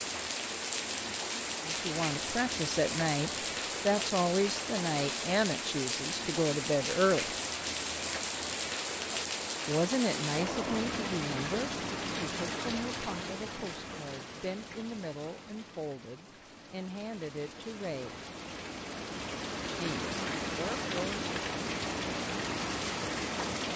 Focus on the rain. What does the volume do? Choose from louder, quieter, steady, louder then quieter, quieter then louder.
quieter then louder.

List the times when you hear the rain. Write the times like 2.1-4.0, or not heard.
0.0-23.7.